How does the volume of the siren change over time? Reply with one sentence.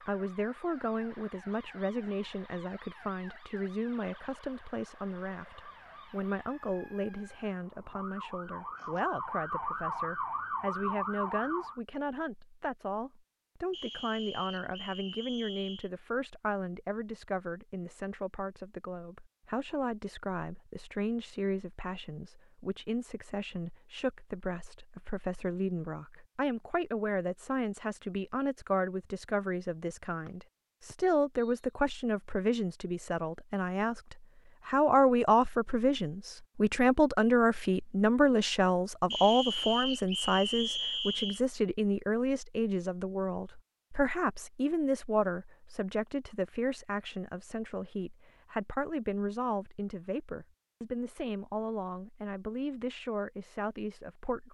The loudness of the siren goes up.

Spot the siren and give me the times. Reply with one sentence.
You can hear the siren from 0.0 to 11.8 s.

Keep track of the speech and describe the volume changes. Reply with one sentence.
The volume of the speech goes up, then down.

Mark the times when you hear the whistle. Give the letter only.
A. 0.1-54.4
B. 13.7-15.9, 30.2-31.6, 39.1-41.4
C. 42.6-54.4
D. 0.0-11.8
B.